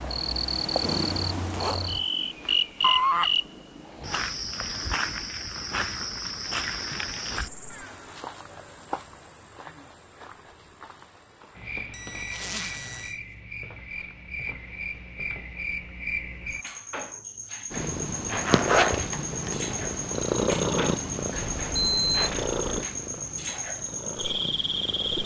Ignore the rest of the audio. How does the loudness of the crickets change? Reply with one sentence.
The volume of the crickets goes down, then up.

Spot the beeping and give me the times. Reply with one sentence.
You can hear the beeping from 2.8 to 3.3 s, from 11.9 to 13.2 s and from 21.3 to 22.9 s.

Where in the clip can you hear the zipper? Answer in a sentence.
The zipper can be heard from 1.1 to 2.1 s, from 12.2 to 13.2 s and from 18.4 to 19.6 s.